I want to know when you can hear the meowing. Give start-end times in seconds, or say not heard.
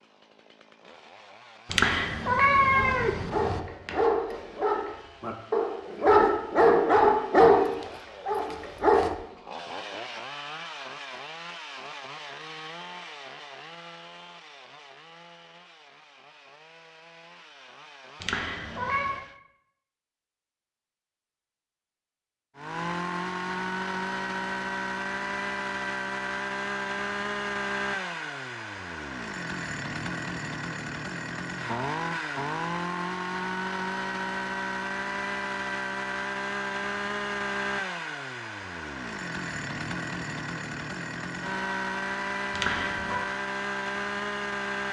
1.6-3.6, 18.2-19.2, 42.5-43.2.